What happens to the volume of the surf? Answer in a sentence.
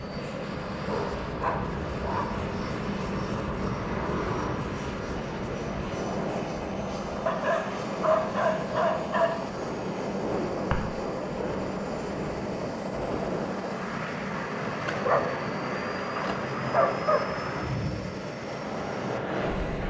The loudness of the surf stays about the same.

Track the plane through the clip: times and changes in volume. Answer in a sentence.
You can hear the plane from 0.0 to 19.8 s, at a steady volume.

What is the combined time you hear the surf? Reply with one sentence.
You can hear the surf for 20 seconds altogether.